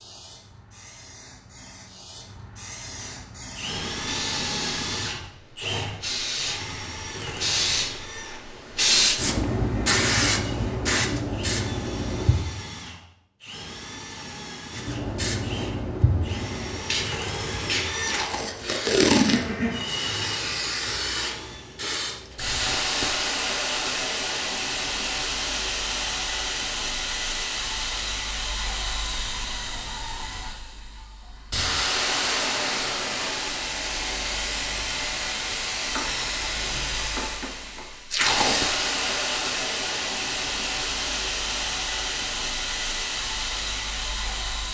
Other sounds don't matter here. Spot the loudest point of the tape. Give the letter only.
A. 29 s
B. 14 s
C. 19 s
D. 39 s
C.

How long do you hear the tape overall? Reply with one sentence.
You can hear the tape for 2 seconds altogether.